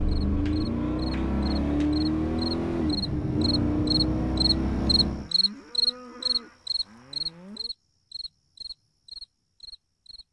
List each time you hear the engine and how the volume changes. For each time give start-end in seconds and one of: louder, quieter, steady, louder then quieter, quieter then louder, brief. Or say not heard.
0.0-5.3 steady.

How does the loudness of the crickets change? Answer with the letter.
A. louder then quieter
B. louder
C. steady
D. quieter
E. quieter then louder
A.